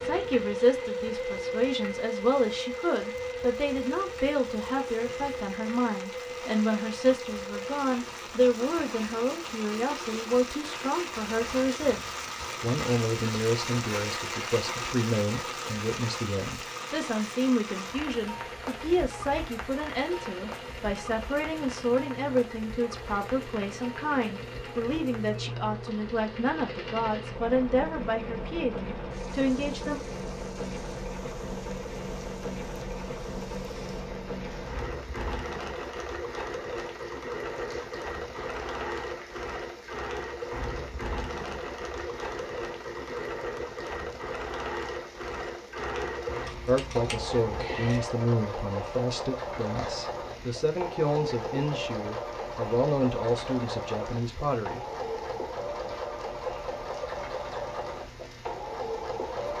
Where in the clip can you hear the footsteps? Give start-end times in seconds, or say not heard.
not heard.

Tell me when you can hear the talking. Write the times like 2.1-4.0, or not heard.
0.0-30.0, 46.6-54.9.